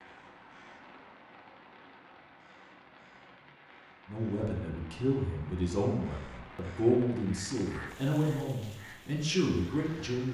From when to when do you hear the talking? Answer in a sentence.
The talking can be heard from 4.0 to 10.2 s.